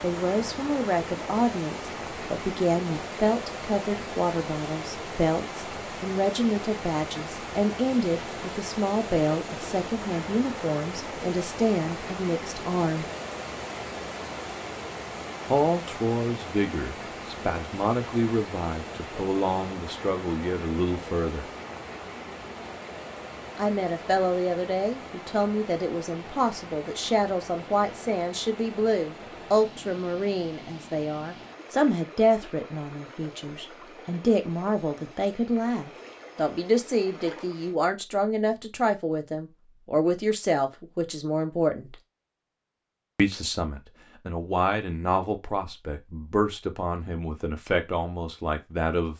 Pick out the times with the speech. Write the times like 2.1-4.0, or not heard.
0.0-13.1, 15.4-21.5, 23.6-42.0, 43.1-49.1.